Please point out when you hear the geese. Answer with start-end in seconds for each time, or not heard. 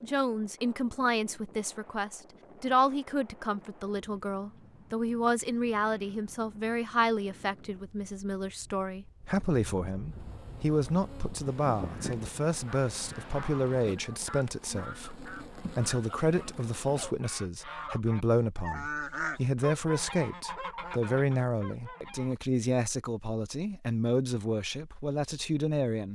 11.8-22.4.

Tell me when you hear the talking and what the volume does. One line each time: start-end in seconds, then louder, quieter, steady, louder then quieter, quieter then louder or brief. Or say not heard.
0.0-26.1 steady.